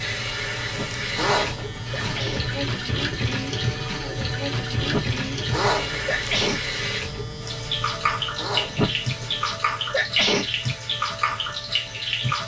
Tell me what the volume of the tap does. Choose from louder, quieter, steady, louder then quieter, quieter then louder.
steady.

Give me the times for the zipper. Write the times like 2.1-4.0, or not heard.
1.1-2.2, 5.5-6.6, 8.3-9.4.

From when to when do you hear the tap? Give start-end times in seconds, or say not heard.
0.0-12.4.